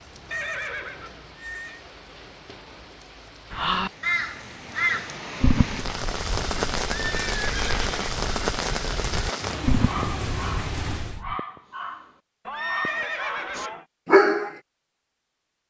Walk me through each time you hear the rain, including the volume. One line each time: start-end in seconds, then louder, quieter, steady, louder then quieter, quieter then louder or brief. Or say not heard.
0.0-11.2 louder.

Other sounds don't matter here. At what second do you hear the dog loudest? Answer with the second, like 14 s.
14 s.